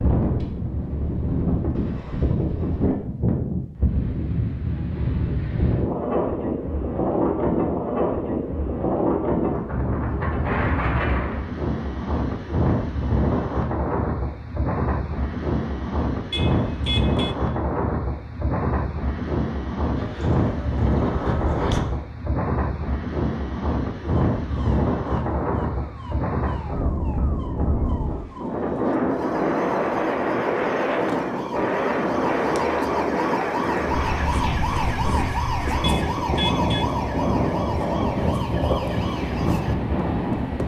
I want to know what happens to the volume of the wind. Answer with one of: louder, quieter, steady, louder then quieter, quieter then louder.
steady.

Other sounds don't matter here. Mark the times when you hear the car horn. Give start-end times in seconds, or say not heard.
16.3-17.4, 35.8-36.9.